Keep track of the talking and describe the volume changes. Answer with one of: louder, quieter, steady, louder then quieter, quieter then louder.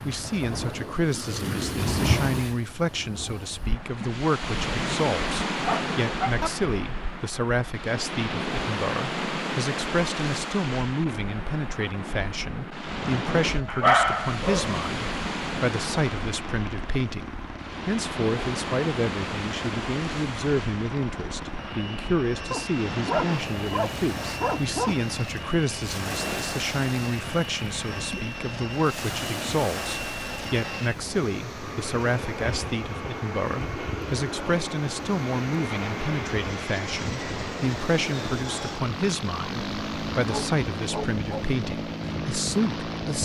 steady.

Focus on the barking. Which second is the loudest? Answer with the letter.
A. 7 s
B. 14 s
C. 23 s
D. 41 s
B.